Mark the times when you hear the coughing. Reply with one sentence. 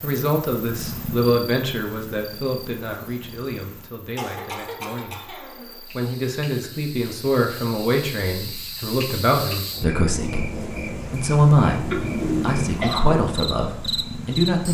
The coughing can be heard from 4.2 to 5.8 s and from 11.8 to 13.2 s.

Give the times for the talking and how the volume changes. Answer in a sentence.
The talking can be heard from 0.0 to 14.6 s, getting quieter then louder.